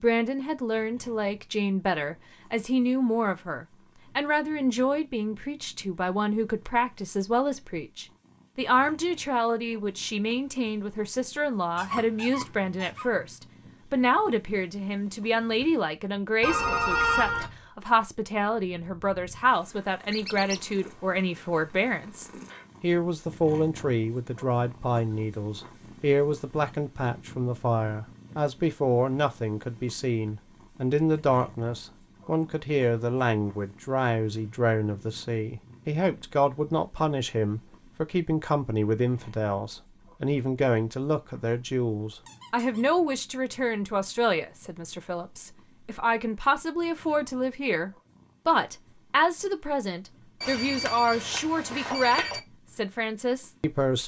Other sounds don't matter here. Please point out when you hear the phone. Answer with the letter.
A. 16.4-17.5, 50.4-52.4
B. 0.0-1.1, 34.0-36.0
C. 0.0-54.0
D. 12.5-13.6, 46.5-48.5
A.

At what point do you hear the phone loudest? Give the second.
17 s.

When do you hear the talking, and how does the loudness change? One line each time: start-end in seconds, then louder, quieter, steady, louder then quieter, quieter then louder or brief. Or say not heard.
0.0-54.0 steady.